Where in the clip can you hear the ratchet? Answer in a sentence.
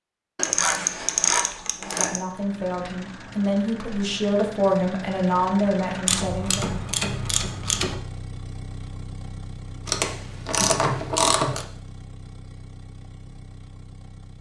The ratchet can be heard from 0.3 to 2.2 s, from 6.0 to 8.0 s and from 9.8 to 11.7 s.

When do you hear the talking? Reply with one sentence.
The talking can be heard from 1.8 to 6.8 s.